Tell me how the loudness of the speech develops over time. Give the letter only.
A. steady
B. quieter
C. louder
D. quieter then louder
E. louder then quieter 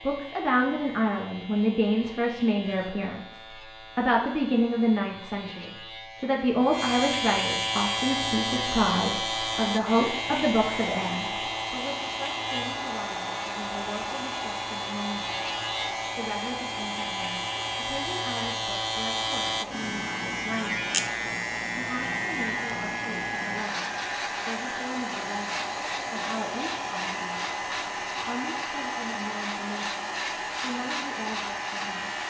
B.